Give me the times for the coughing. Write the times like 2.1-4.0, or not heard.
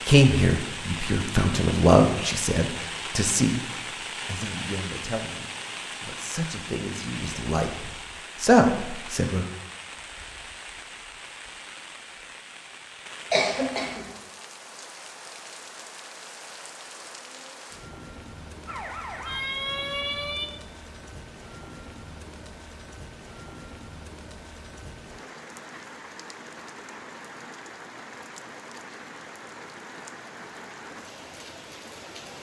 13.3-14.1.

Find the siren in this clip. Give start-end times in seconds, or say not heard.
18.6-20.5.